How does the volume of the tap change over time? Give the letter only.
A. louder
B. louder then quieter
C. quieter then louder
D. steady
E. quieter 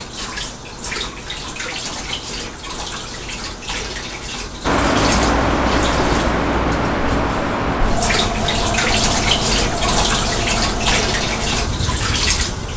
A.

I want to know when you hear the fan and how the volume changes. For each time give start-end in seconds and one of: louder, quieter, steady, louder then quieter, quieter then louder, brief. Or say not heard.
4.6-12.7 quieter.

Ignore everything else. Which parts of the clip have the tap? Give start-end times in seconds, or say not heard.
0.0-12.7.